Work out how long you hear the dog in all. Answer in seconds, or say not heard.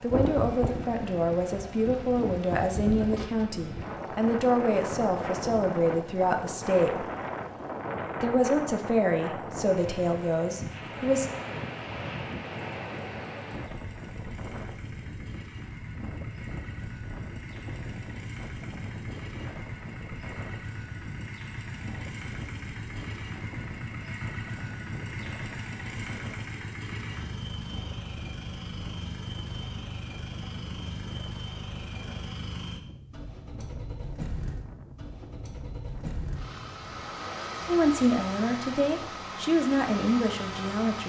not heard.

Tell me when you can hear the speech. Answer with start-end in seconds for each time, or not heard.
0.0-7.0, 8.2-11.2, 37.6-41.0.